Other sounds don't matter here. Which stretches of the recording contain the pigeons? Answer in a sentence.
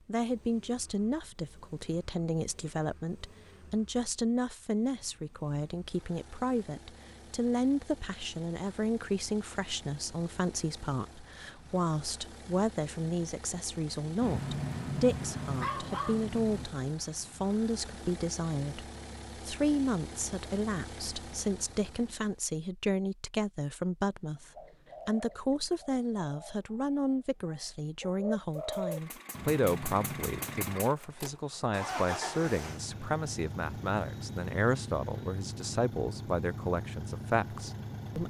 The pigeons can be heard from 24.6 to 29.0 s.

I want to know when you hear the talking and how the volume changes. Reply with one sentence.
The talking can be heard from 0.1 to 18.9 s, at a steady volume; and from 19.4 to 38.2 s, at a steady volume.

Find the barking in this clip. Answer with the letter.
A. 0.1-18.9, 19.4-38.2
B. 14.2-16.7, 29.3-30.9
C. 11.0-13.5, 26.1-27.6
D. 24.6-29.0
B.